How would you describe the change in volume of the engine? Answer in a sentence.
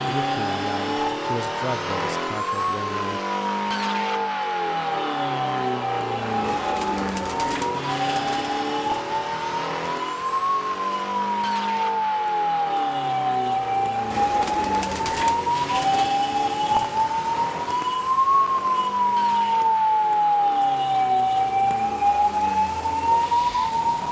The volume of the engine goes down.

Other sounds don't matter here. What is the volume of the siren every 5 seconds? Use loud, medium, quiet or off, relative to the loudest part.
medium, medium, loud, loud, loud.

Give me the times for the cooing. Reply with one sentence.
You can hear the cooing from 6.4 to 8.6 s and from 14.1 to 16.2 s.